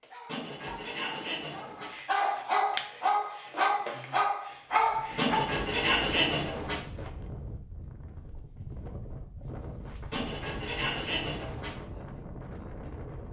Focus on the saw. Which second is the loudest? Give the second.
6 s.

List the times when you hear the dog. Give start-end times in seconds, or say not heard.
0.0-5.5.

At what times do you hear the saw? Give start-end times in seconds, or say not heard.
0.2-1.9, 5.2-6.8, 10.1-11.7.